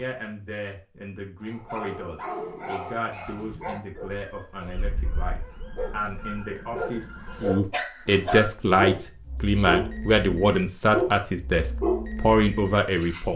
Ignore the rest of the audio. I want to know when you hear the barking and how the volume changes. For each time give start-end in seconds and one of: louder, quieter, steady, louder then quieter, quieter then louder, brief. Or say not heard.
1.4-13.2 quieter then louder.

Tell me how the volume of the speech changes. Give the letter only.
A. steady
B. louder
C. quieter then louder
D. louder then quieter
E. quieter
B.